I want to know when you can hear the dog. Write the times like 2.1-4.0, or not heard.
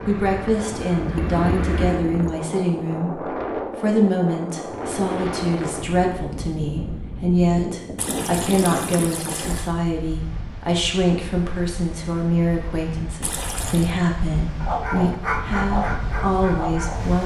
14.6-17.2.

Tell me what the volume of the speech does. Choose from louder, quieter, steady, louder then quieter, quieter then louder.
steady.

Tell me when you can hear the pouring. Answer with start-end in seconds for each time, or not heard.
1.1-2.4, 8.0-9.7, 13.2-13.9.